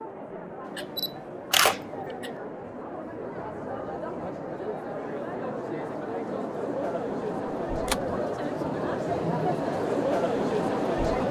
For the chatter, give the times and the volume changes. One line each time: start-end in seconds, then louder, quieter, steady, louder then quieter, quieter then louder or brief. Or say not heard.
0.0-11.2 louder.